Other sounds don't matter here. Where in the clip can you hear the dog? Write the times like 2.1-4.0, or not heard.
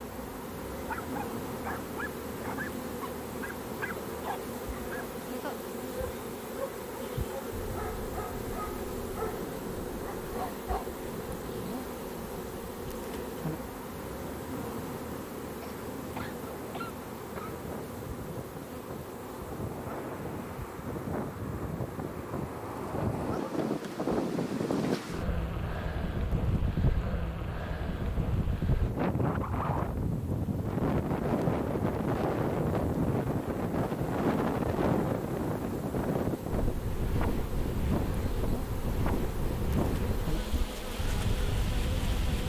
0.7-10.8.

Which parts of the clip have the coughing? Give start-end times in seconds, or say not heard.
15.6-17.6, 22.9-23.6.